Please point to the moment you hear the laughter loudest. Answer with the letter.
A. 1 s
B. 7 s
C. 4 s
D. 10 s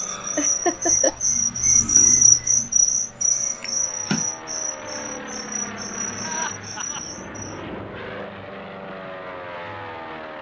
A.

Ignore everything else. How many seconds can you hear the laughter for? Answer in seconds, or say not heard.
2 s.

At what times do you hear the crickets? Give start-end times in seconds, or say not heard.
0.0-7.6.